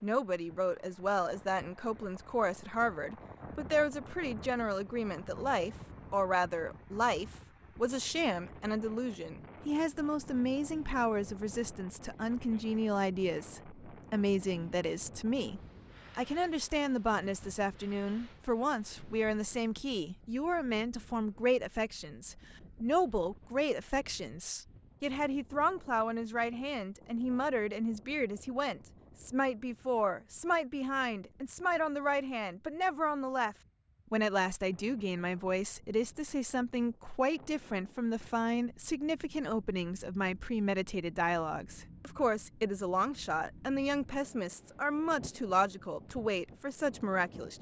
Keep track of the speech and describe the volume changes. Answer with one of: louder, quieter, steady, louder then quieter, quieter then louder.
steady.